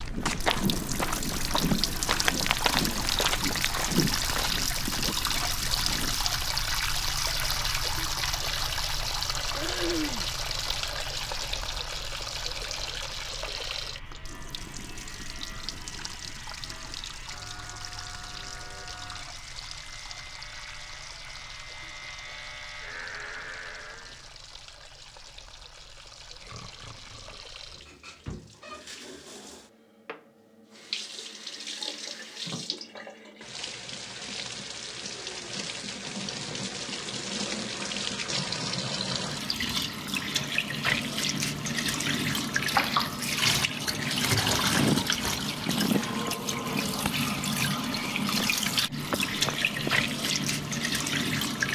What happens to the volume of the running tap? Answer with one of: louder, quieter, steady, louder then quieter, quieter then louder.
quieter then louder.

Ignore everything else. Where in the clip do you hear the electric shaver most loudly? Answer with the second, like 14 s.
23 s.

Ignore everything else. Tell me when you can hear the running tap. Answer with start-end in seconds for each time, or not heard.
0.0-51.7.